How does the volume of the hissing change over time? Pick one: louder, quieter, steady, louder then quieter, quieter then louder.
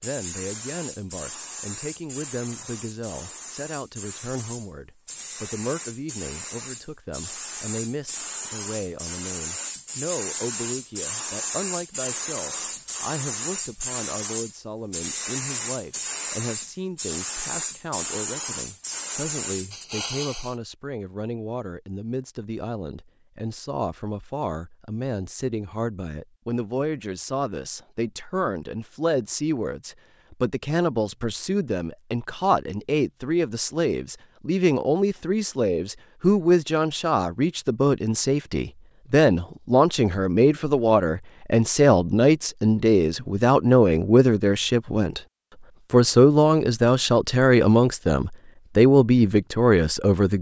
louder.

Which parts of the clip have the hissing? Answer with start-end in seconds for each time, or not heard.
0.0-20.6.